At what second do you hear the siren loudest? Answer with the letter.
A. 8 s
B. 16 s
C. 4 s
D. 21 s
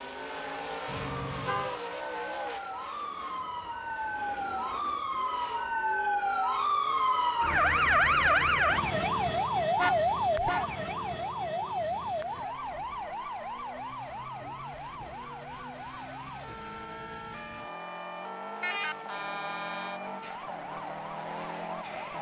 A.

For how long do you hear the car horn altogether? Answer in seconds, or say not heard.
3 s.